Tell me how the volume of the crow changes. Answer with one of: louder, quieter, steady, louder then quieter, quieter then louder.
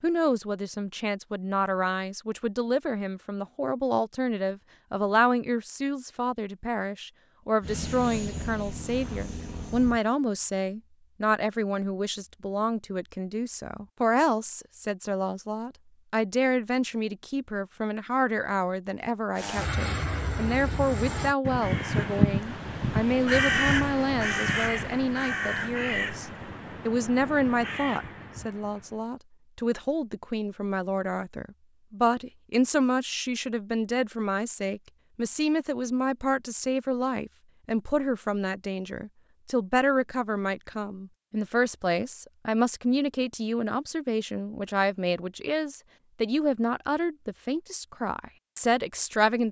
quieter.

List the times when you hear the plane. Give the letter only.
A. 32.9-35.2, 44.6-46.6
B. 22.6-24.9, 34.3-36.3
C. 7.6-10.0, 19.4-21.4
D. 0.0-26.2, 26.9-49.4
C.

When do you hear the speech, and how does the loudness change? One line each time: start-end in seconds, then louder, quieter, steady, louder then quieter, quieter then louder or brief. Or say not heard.
0.0-26.2 steady
26.9-49.4 steady.